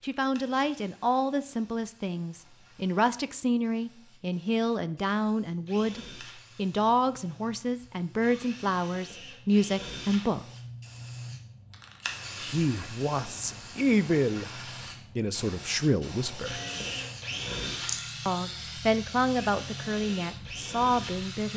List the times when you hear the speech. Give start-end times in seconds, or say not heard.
0.0-10.4, 12.4-16.6, 18.2-21.5.